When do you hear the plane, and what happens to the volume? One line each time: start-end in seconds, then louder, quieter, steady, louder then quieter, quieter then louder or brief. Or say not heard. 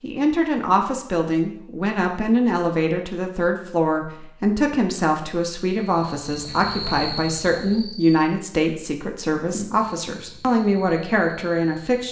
not heard.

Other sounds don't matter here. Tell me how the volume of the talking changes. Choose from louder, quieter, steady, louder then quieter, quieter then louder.
steady.